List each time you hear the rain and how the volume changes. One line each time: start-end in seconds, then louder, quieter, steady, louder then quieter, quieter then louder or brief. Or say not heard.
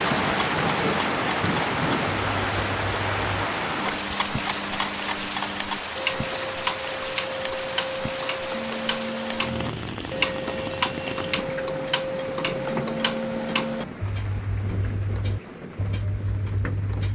0.0-17.1 quieter.